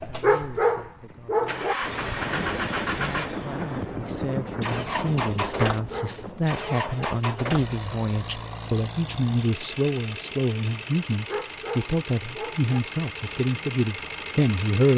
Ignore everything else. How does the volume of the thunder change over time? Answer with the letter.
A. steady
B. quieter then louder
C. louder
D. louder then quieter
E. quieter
E.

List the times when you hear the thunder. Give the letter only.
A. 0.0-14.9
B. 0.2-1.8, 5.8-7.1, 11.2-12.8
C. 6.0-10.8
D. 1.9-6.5
D.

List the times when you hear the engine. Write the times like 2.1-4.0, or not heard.
0.0-14.9.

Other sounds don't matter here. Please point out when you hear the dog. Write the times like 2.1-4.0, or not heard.
0.2-1.8, 5.8-7.1, 11.2-12.8.